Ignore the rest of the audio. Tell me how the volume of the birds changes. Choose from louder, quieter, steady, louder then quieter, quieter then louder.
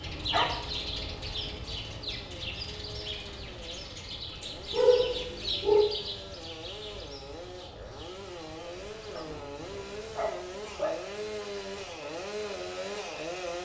quieter.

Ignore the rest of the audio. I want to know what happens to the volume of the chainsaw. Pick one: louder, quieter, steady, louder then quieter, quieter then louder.
louder.